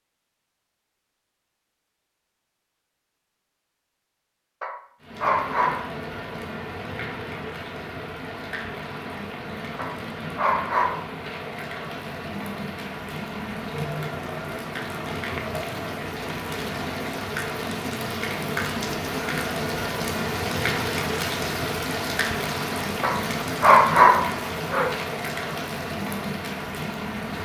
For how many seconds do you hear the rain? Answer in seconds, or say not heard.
22 s.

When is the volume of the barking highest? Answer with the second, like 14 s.
24 s.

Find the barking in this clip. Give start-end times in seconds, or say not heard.
4.6-5.8, 9.8-11.1, 23.0-24.9.